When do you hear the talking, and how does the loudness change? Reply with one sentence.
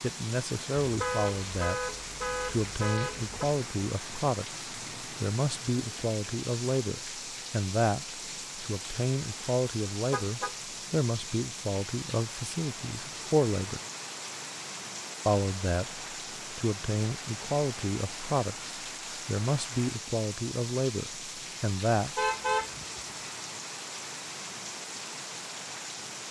You can hear the talking from 0.0 to 13.8 s, at a steady volume; and from 15.2 to 22.2 s, at a steady volume.